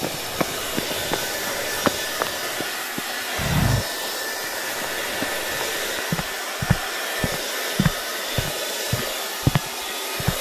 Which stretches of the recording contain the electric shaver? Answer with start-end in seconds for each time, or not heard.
not heard.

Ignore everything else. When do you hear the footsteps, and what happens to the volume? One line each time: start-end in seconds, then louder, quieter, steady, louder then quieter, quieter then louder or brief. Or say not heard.
0.0-10.3 quieter then louder.